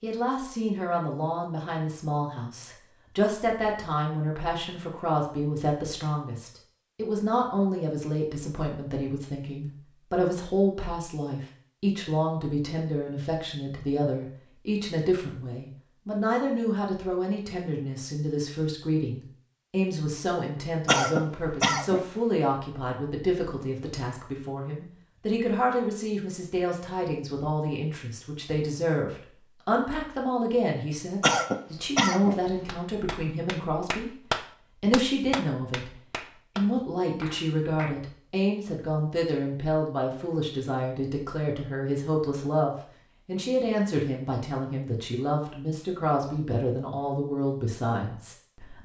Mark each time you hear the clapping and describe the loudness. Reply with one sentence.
The clapping can be heard from 32.6 to 37.9 s, getting louder then quieter.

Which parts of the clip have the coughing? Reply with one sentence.
You can hear the coughing from 20.9 to 22.0 s and from 31.2 to 32.4 s.